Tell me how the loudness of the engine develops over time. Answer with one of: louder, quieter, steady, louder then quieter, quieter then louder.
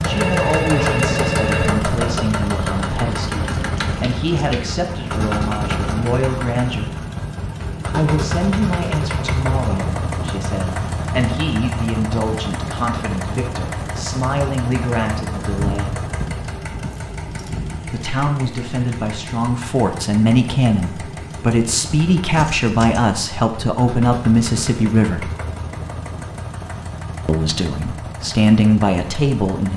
quieter.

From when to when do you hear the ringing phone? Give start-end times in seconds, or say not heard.
0.1-1.7.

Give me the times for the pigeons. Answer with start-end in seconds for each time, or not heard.
not heard.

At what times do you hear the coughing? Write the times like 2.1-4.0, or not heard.
not heard.